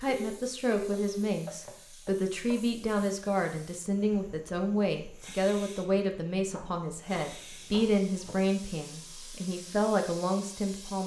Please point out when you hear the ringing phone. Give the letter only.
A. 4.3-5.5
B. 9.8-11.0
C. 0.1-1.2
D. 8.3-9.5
C.